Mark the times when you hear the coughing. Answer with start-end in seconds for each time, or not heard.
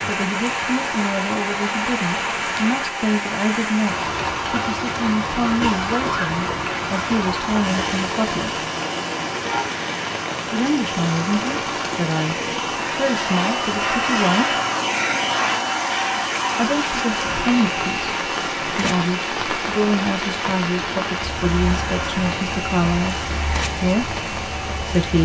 5.5-6.7.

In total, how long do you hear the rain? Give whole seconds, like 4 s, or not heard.
25 s.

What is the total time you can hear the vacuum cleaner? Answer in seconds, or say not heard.
25 s.